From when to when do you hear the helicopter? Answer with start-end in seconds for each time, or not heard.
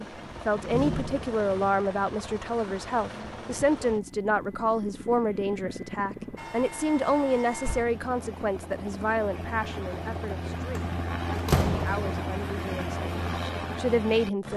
0.0-14.5.